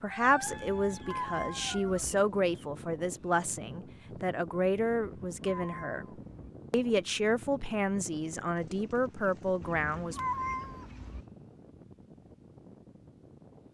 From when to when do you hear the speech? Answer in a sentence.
The speech can be heard from 0.0 to 6.0 s and from 6.7 to 10.2 s.